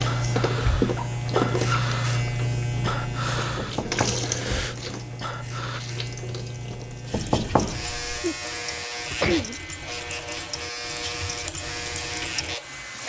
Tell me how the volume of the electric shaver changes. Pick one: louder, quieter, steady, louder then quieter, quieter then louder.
quieter.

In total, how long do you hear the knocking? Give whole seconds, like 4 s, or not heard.
2 s.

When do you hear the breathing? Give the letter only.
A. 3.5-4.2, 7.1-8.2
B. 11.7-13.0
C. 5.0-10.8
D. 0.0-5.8
D.